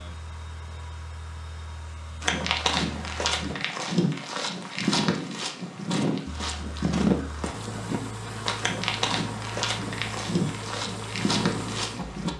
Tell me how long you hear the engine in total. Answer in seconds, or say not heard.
9 s.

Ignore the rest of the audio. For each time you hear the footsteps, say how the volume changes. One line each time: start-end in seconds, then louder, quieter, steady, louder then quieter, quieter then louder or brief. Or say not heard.
2.2-12.3 steady.